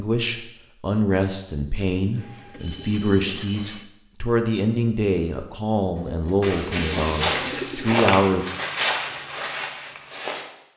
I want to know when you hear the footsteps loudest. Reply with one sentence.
The loudest moment of the footsteps is at 8 seconds.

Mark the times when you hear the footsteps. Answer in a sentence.
You can hear the footsteps from 6.4 to 10.7 s.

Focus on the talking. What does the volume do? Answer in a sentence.
The loudness of the talking stays about the same.